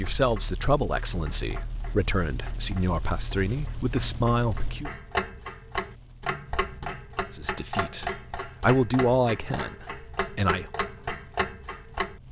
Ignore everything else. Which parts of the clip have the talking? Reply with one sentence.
The talking can be heard from 0.0 to 4.9 s and from 7.3 to 10.7 s.